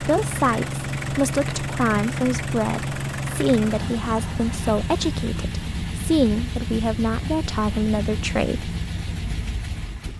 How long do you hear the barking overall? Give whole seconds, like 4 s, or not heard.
not heard.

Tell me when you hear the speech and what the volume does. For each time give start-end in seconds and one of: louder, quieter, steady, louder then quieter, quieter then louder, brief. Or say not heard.
0.0-8.8 steady.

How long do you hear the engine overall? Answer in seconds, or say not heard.
10 s.